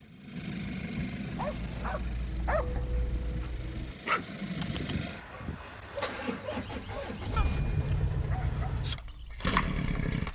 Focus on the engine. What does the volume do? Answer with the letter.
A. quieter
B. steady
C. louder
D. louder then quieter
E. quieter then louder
E.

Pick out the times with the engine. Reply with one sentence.
The engine can be heard from 0.0 to 10.2 s.